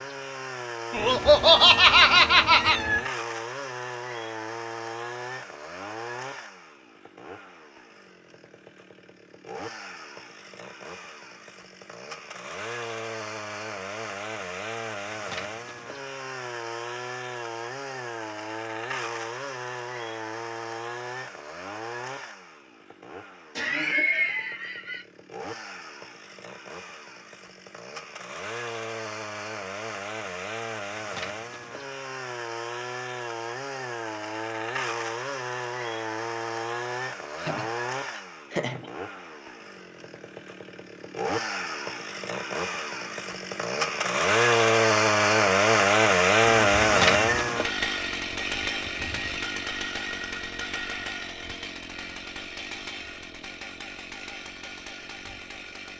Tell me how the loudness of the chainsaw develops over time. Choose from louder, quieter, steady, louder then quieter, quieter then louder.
louder.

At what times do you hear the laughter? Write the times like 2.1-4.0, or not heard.
0.9-2.8, 23.6-25.1, 37.4-38.9.